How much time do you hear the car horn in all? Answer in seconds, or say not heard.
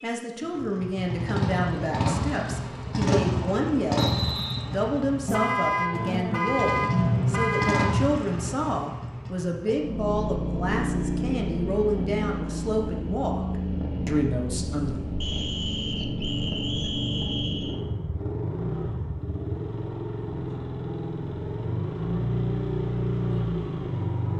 3 s.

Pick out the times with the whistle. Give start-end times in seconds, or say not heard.
4.0-4.7, 15.2-17.8.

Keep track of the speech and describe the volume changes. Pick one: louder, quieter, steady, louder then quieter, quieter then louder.
steady.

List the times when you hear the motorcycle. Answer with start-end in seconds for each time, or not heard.
0.0-24.3.